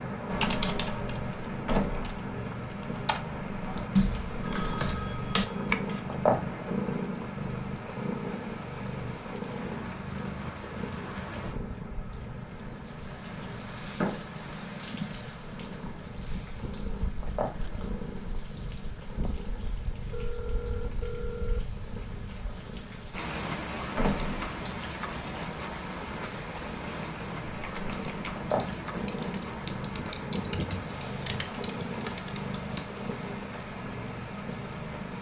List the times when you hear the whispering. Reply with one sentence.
The whispering can't be heard in this clip.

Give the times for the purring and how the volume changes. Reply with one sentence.
The purring can be heard from 0.0 to 35.1 s, getting quieter then louder.